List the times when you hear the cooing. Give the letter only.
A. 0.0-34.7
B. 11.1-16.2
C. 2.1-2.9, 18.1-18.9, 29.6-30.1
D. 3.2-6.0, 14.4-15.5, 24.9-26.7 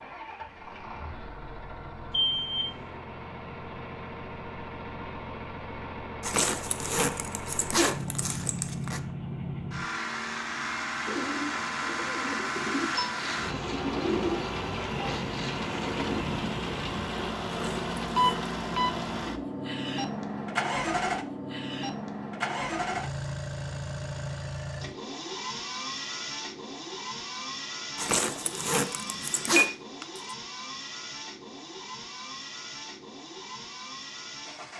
B.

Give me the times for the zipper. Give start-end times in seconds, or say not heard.
6.2-9.0, 17.4-18.5, 27.9-29.7.